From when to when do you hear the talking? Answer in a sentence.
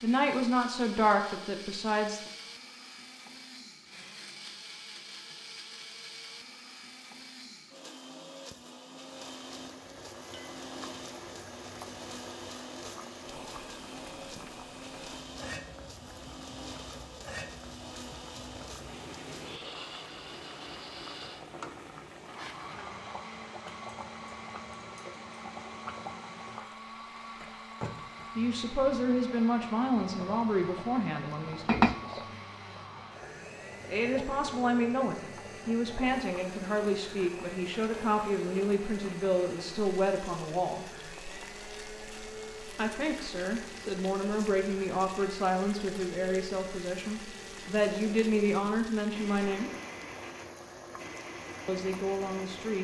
You can hear the talking from 0.0 to 2.3 s, from 28.4 to 32.2 s, from 33.9 to 40.9 s, from 42.8 to 49.7 s and from 51.6 to 52.7 s.